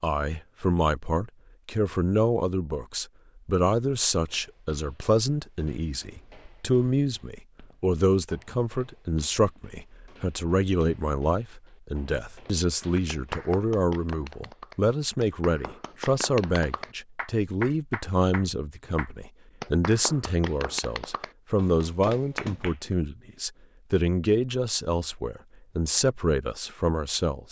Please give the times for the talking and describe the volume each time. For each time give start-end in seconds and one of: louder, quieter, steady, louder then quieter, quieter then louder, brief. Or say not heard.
0.0-27.4 steady.